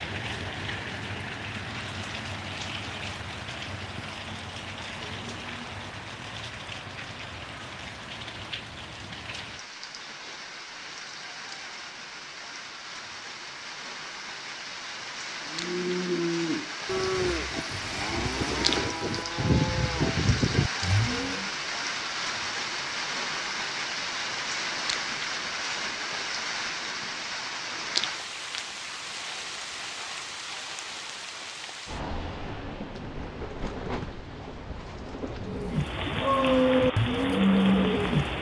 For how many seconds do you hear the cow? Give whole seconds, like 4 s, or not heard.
9 s.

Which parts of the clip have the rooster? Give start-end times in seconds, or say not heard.
not heard.